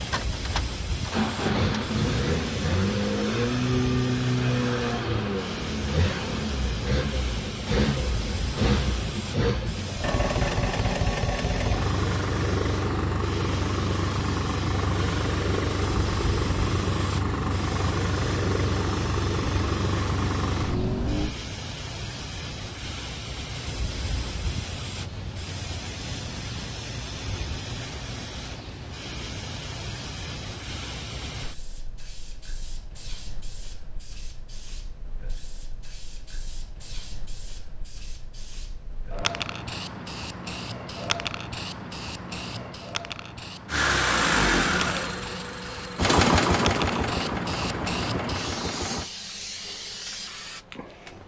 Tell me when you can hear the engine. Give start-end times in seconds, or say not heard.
0.0-21.4, 43.6-49.1.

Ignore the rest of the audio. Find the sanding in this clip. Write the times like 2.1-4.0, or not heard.
not heard.